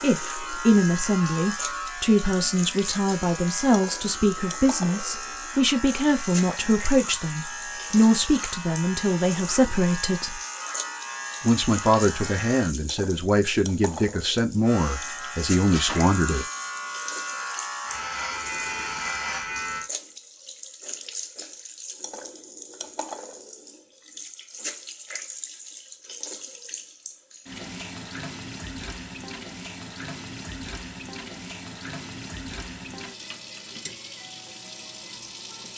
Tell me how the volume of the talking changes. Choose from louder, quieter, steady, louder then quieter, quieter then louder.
steady.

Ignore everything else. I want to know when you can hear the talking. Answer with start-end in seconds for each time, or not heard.
0.0-10.4, 11.4-16.4.